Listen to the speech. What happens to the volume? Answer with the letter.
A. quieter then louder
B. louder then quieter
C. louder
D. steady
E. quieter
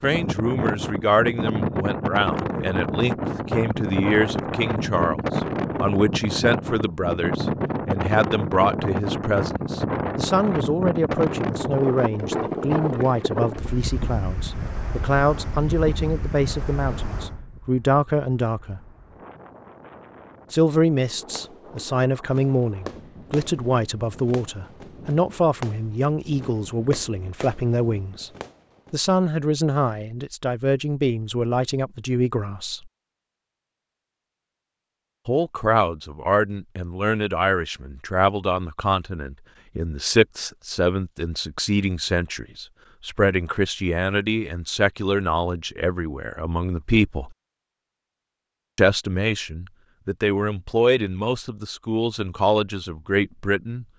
D.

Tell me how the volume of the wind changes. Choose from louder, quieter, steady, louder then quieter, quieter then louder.
quieter.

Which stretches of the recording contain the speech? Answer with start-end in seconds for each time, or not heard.
0.0-18.8, 20.5-28.3, 28.9-32.9, 35.2-47.4, 48.8-53.9.